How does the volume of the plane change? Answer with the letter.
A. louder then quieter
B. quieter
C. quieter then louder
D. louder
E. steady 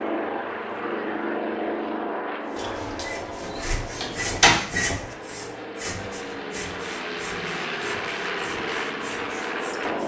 C.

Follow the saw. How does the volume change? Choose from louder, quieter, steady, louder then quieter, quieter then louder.
louder then quieter.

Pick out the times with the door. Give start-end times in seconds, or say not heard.
2.5-4.5.